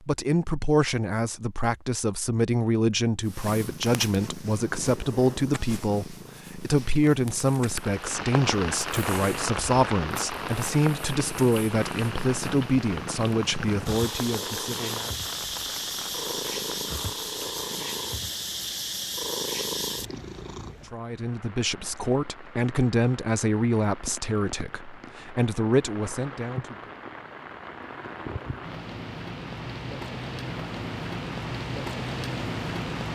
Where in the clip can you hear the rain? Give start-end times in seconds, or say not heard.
7.7-33.1.